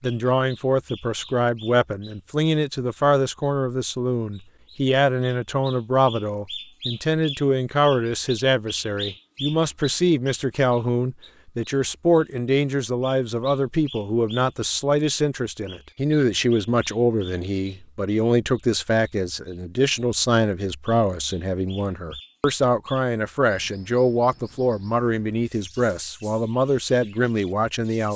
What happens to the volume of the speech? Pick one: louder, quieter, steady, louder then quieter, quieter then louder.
steady.